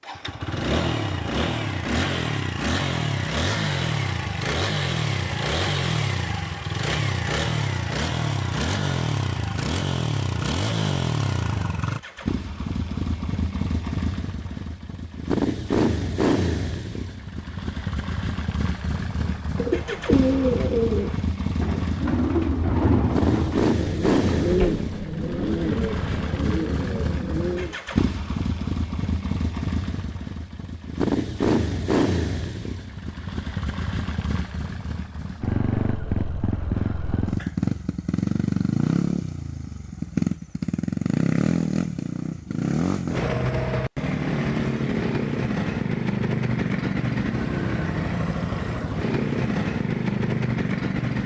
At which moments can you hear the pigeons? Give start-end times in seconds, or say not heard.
19.4-27.8.